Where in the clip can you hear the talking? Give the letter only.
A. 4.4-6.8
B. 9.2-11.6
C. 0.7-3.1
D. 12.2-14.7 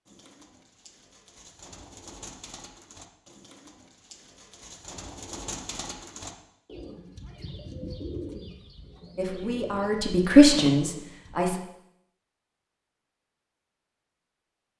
B.